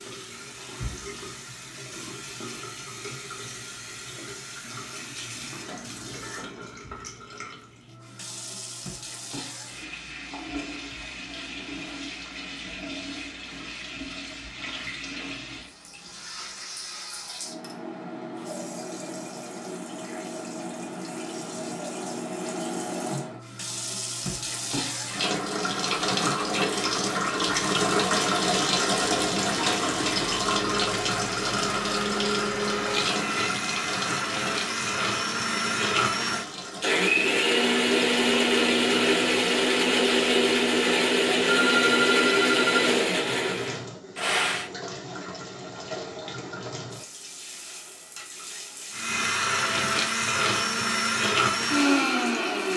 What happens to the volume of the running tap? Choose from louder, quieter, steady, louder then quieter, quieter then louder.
louder then quieter.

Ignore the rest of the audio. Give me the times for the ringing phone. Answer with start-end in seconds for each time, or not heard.
41.5-42.9.